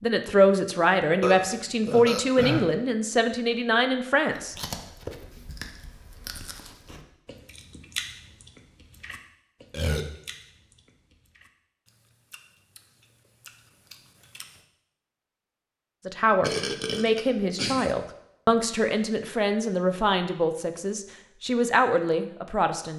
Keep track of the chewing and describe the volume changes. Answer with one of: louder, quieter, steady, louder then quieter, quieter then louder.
quieter then louder.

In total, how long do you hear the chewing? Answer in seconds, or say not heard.
10 s.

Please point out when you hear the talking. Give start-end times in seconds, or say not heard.
0.0-4.5, 16.1-22.9.